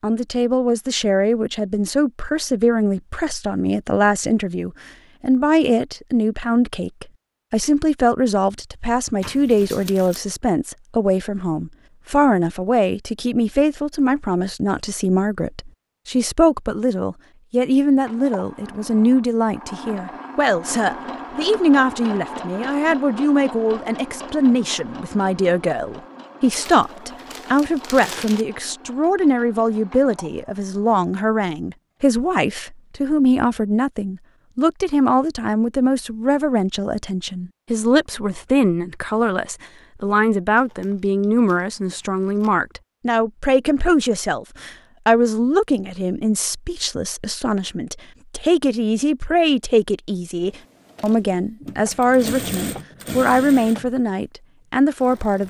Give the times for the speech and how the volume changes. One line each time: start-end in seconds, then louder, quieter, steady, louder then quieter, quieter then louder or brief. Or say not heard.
0.0-55.4 steady.